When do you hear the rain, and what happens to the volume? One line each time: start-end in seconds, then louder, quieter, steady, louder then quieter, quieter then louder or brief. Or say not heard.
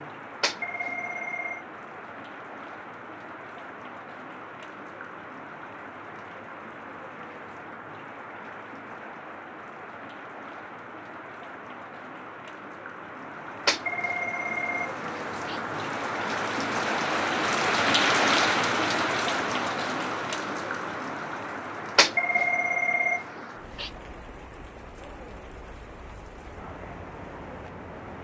0.0-28.1 louder then quieter.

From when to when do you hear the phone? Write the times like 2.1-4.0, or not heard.
0.4-1.6, 13.7-15.6, 21.9-23.9.